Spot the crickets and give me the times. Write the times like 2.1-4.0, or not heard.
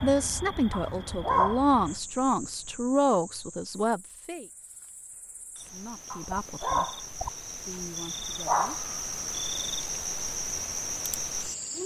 0.0-11.8.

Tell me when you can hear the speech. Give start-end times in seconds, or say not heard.
0.0-4.5, 5.7-6.9, 7.7-9.1.